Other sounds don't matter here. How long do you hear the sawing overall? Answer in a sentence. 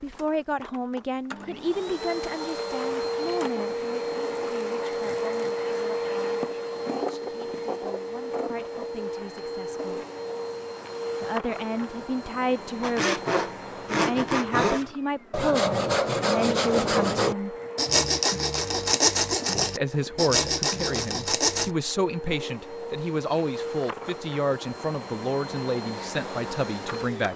The sawing can be heard for 9 seconds in total.